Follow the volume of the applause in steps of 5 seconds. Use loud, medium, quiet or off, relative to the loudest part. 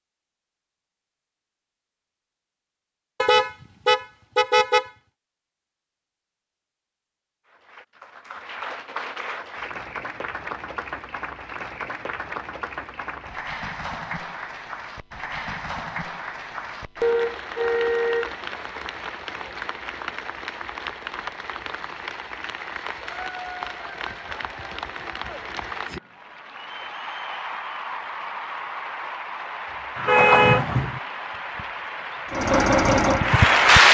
off, quiet, quiet, quiet, quiet, quiet, loud.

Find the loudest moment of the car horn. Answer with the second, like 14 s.
30 s.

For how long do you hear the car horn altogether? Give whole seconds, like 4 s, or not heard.
4 s.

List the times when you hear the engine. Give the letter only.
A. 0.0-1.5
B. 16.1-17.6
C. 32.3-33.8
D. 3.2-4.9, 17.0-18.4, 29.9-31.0
C.